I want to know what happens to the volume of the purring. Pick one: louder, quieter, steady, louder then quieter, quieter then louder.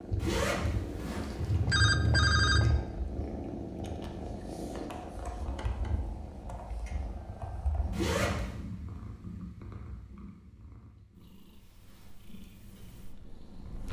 quieter.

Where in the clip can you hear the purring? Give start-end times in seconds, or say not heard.
0.0-13.8.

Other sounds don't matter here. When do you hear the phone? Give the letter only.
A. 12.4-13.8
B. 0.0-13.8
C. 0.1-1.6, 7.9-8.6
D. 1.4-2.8
D.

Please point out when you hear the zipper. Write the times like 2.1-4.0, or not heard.
0.1-1.6, 7.9-8.6.